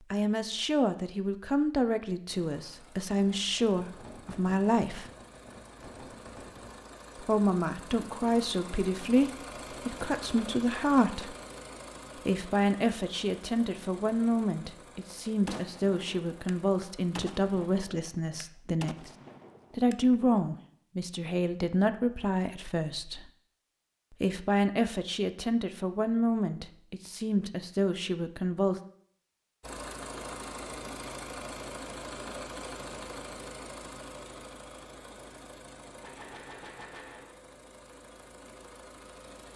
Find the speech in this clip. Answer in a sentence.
The speech can be heard from 0.1 to 5.0 s, from 7.2 to 11.3 s, from 12.2 to 19.1 s, from 19.7 to 23.3 s and from 24.2 to 28.8 s.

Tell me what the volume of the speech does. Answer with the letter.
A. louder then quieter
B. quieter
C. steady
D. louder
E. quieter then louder
C.